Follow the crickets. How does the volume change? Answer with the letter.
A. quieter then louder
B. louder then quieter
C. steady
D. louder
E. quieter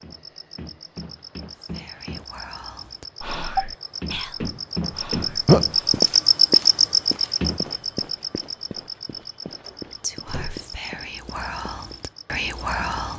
B.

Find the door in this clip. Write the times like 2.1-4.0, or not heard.
9.6-10.6.